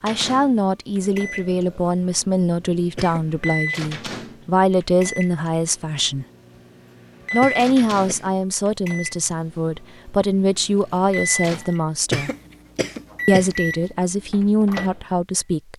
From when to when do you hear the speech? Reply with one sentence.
You can hear the speech from 0.0 to 6.2 s, from 7.3 to 12.3 s and from 13.2 to 15.7 s.